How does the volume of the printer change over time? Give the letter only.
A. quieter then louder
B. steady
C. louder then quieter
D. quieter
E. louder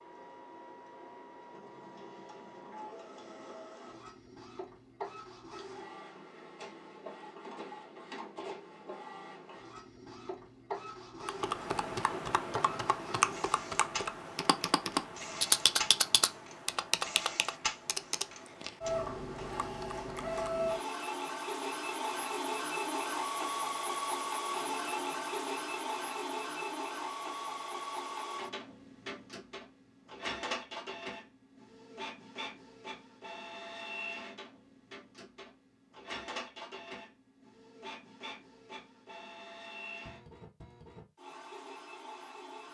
C.